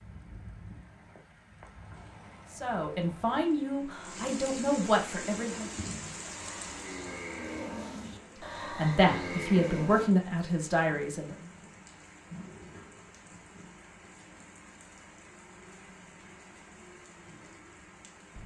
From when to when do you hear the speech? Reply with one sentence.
You can hear the speech from 2.5 to 5.7 s and from 8.6 to 11.3 s.